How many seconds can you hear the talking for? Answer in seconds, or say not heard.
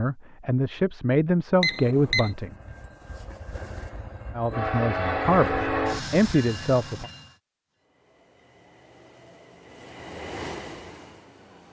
5 s.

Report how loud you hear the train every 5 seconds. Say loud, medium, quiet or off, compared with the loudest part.
loud, loud, medium.